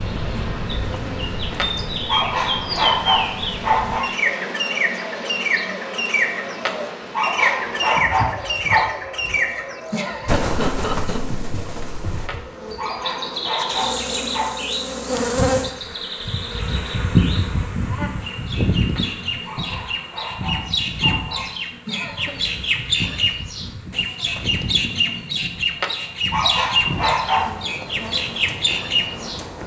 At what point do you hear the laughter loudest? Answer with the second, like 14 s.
11 s.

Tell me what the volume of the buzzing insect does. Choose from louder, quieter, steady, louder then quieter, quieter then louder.
louder then quieter.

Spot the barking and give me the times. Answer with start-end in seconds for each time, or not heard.
1.6-4.2, 6.7-9.0, 12.2-14.7, 18.9-21.5, 25.8-27.9.